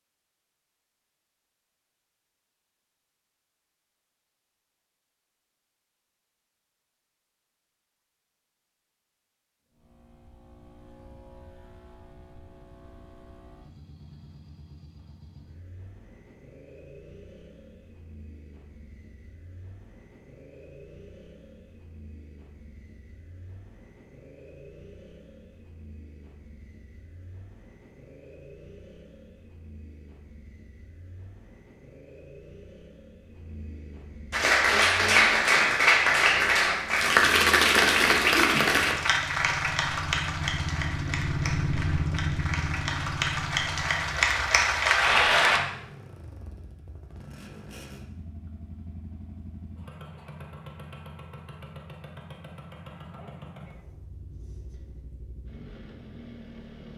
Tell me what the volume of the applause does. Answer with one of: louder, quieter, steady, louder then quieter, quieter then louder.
quieter then louder.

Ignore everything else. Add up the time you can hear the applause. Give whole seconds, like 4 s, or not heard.
11 s.